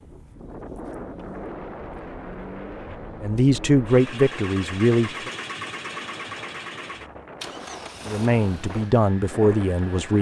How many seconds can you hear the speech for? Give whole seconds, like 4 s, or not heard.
4 s.